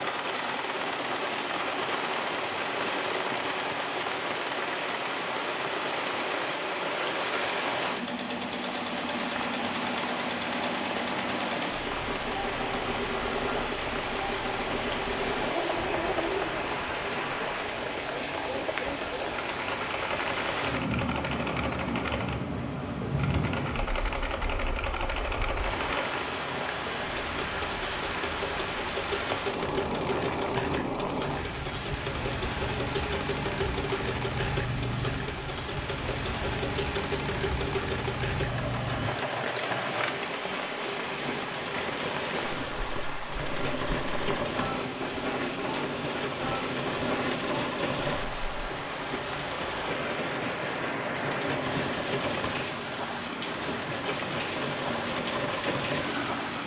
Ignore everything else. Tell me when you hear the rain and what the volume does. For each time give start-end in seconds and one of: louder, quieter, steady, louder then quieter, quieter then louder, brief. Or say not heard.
0.0-56.6 steady.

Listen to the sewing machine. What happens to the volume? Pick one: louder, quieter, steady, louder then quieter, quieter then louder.
steady.